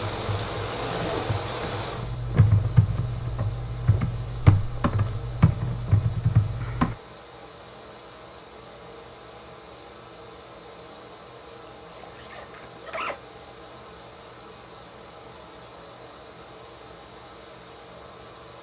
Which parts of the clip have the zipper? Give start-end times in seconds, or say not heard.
0.7-1.4, 11.9-13.2.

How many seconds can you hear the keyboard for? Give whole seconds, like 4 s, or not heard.
7 s.